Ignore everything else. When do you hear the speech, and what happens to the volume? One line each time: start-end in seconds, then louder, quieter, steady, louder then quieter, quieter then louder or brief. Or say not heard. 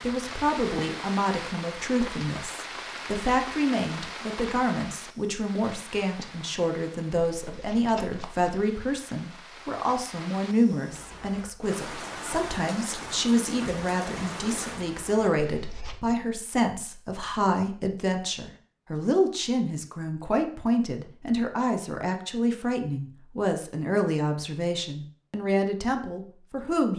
0.0-26.9 steady.